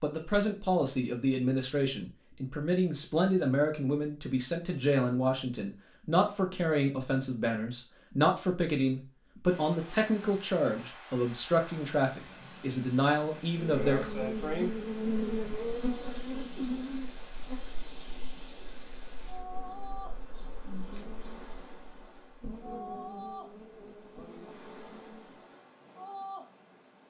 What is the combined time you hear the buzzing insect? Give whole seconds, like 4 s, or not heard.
12 s.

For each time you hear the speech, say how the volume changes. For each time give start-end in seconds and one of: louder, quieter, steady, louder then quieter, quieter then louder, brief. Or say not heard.
0.0-14.1 steady.